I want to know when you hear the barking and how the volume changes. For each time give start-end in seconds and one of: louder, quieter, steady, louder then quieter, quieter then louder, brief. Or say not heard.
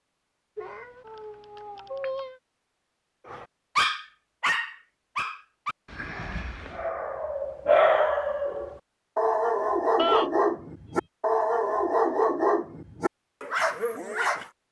3.2-14.4 steady.